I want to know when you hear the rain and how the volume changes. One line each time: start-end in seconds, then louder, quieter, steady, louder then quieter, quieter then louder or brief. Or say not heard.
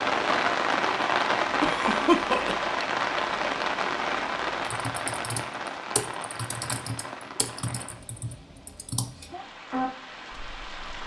0.0-11.0 quieter.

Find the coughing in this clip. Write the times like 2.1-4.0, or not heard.
1.6-2.6.